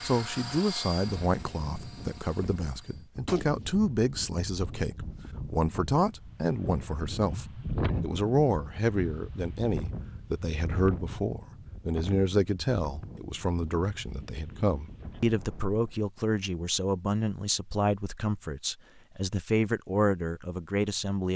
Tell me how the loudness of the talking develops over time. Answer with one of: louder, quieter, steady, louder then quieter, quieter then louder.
steady.